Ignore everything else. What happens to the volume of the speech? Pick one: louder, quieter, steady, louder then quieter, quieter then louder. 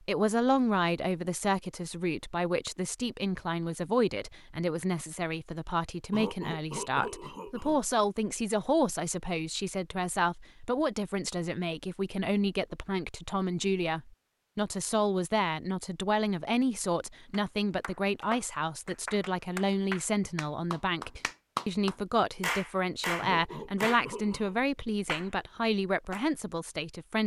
steady.